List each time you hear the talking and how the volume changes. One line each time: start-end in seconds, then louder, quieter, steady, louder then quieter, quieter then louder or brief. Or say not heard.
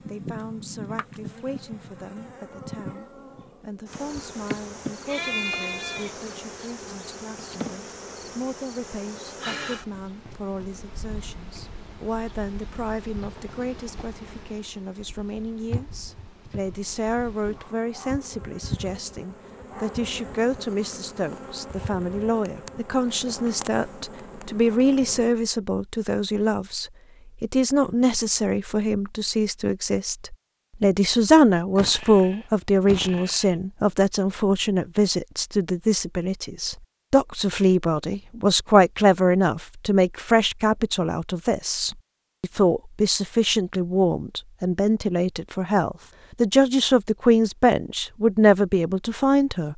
0.1-49.7 louder.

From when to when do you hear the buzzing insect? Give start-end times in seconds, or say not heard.
0.0-25.4.